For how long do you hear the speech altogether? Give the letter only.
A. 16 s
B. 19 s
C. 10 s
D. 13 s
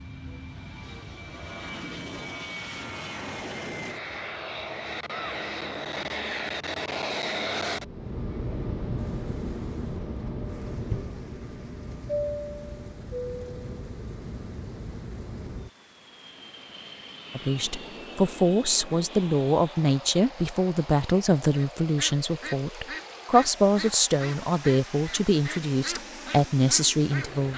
C.